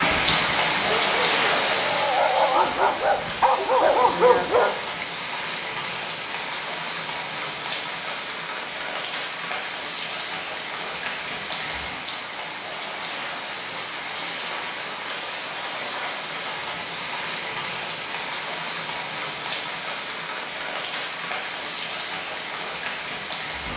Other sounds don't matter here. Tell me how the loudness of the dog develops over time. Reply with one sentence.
The loudness of the dog goes up.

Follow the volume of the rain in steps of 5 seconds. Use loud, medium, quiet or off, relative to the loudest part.
loud, medium, medium, medium, medium.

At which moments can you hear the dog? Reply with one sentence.
The dog can be heard from 0.0 to 5.0 s.